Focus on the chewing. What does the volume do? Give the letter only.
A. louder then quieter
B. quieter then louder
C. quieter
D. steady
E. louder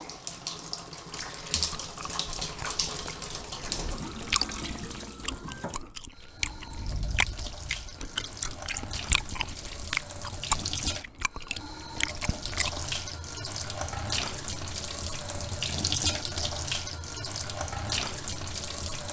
E.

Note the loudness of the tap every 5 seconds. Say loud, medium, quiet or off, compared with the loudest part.
loud, medium, loud, loud.